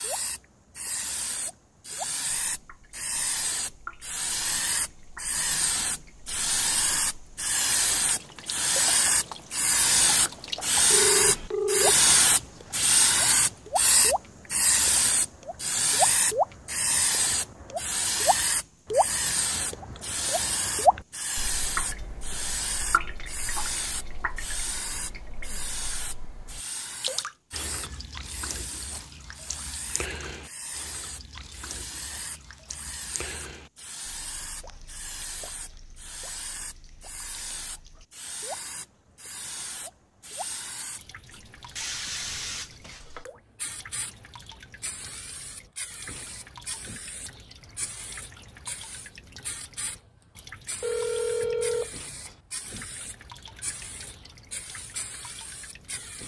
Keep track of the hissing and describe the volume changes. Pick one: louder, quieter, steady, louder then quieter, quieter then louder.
quieter.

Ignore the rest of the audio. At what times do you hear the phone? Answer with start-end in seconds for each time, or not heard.
10.9-12.8, 50.8-52.4.